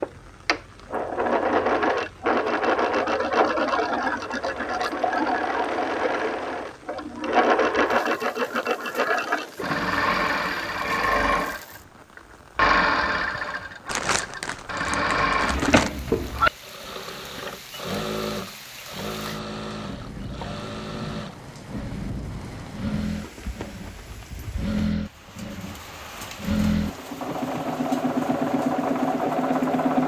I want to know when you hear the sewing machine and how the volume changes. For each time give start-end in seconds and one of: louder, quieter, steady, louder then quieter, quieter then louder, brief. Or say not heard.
0.0-30.0 quieter then louder.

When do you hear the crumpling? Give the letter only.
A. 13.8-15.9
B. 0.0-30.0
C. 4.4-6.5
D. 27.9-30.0
A.